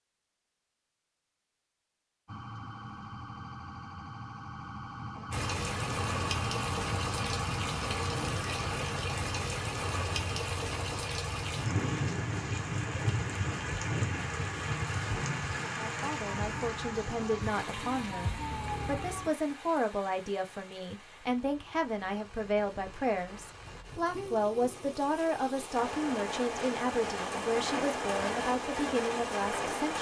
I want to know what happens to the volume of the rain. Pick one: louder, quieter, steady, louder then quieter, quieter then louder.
quieter then louder.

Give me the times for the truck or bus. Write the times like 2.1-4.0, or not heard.
not heard.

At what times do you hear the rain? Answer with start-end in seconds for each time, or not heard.
5.3-29.9.